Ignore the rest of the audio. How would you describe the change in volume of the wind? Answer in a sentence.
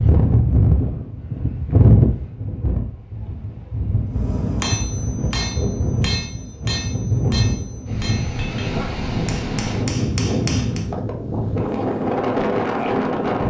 The loudness of the wind goes down, then up.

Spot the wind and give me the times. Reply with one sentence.
The wind can be heard from 0.0 to 13.4 s.